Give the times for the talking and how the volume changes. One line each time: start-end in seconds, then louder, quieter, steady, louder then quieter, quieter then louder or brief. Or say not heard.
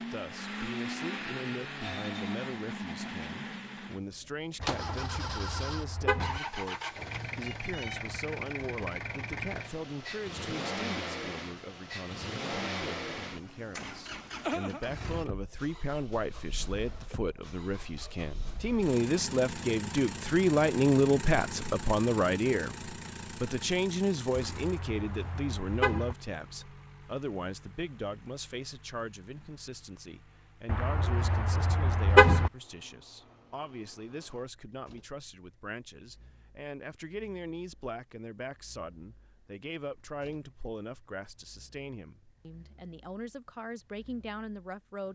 0.1-45.1 louder then quieter.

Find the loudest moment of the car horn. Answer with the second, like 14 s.
32 s.